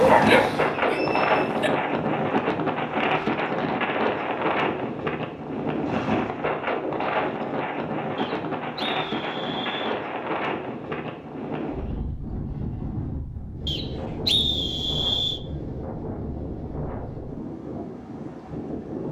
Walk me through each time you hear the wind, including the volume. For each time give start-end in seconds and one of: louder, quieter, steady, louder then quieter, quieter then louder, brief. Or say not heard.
0.0-19.0 quieter.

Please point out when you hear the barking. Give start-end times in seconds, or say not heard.
0.0-1.7.